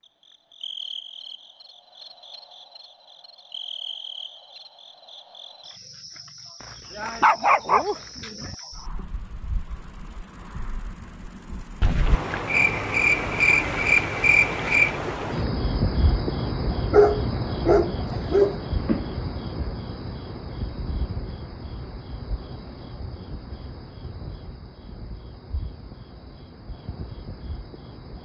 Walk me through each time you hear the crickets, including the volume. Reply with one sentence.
You can hear the crickets from 0.0 to 28.1 s, getting louder then quieter.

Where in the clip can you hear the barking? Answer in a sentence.
The barking can be heard from 7.0 to 8.6 s and from 16.9 to 18.6 s.